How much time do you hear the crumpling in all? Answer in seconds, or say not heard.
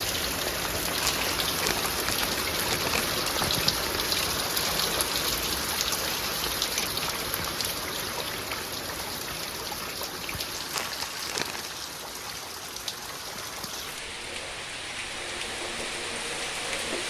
3 s.